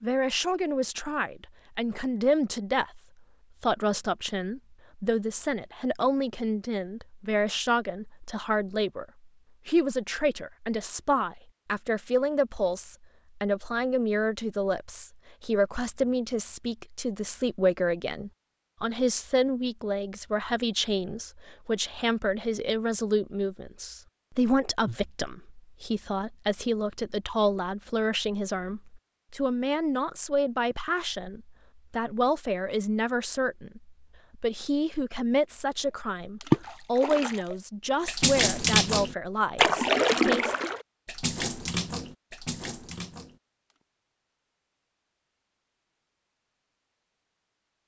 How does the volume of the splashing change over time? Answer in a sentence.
The loudness of the splashing goes up, then down.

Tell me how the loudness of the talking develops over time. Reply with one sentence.
The loudness of the talking stays about the same.